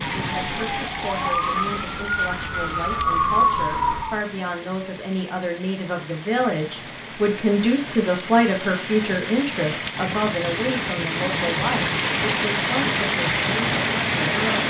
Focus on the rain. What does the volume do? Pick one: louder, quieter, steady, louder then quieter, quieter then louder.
quieter then louder.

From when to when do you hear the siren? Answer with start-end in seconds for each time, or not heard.
0.0-4.2.